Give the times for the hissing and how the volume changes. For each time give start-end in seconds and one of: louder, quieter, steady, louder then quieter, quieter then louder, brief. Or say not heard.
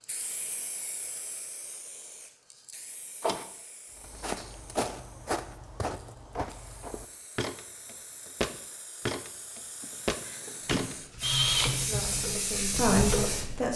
0.0-13.6 quieter then louder.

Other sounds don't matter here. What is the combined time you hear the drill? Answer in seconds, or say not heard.
3 s.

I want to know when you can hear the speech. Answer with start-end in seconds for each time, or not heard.
11.7-13.7.